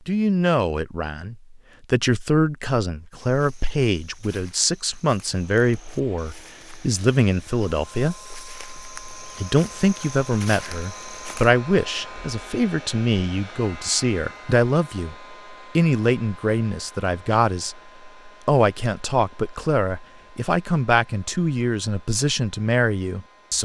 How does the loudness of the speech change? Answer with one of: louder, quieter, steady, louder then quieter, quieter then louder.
steady.